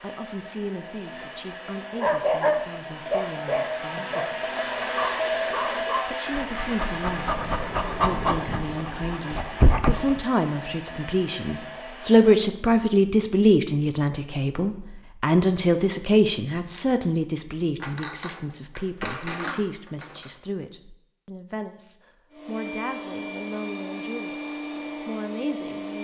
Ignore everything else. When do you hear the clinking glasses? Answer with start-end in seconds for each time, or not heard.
17.8-20.3.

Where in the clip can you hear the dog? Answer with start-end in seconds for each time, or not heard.
1.9-10.2.